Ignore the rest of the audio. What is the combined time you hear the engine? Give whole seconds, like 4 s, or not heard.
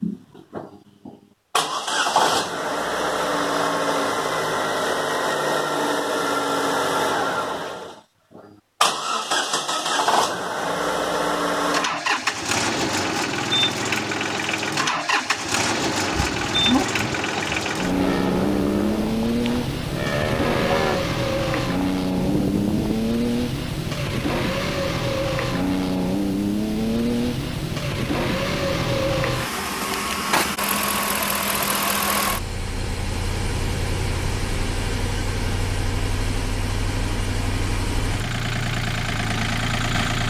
40 s.